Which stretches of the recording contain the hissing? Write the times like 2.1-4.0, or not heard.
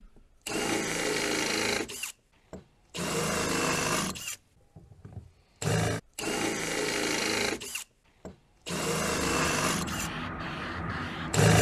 9.2-11.5.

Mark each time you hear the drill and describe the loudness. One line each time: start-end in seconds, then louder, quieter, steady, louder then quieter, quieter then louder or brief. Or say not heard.
0.5-11.5 steady.